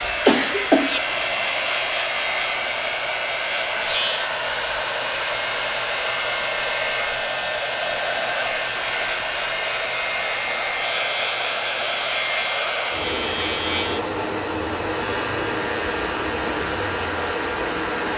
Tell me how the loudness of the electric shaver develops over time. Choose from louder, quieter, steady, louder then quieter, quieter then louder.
steady.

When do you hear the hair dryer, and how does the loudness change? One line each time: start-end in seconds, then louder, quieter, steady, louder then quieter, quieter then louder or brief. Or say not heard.
0.0-18.1 steady.